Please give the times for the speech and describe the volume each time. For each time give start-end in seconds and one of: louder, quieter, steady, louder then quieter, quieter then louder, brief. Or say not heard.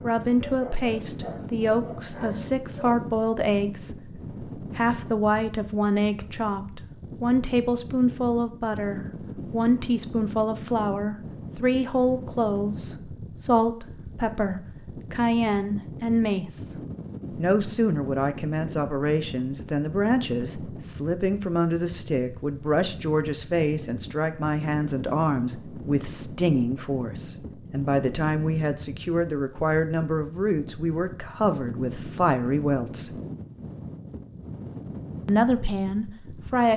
0.0-16.7 steady
17.4-33.1 steady
35.2-36.7 brief.